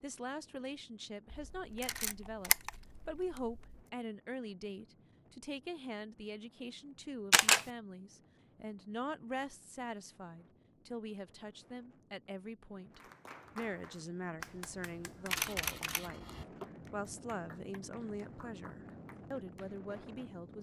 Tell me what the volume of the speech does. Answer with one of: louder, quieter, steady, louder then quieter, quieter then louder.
steady.